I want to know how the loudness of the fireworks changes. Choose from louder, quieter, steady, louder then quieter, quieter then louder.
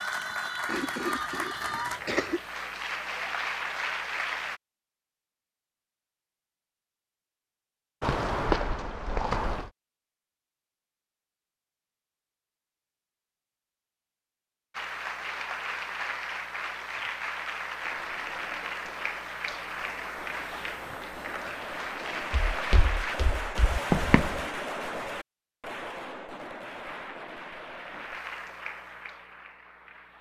louder then quieter.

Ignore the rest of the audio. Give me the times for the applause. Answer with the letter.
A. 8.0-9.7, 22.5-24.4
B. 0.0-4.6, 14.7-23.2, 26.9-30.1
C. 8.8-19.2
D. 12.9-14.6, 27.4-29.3
B.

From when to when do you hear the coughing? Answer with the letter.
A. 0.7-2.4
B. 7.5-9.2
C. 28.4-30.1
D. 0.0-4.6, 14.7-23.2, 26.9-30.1
A.